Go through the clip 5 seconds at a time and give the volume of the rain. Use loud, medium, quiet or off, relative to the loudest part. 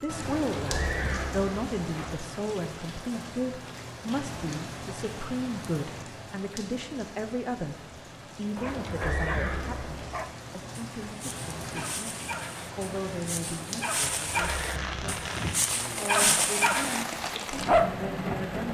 medium, medium, medium, loud.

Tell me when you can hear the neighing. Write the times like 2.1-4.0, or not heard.
0.2-2.1, 8.6-10.3, 13.9-15.2.